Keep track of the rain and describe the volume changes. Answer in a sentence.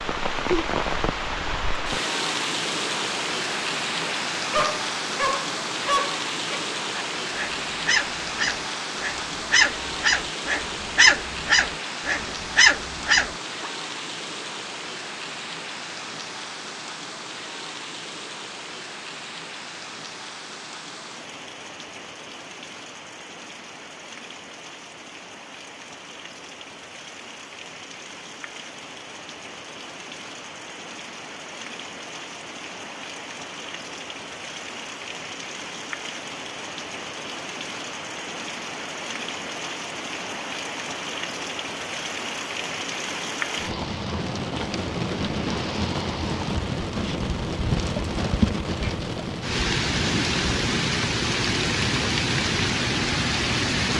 The loudness of the rain goes down, then up.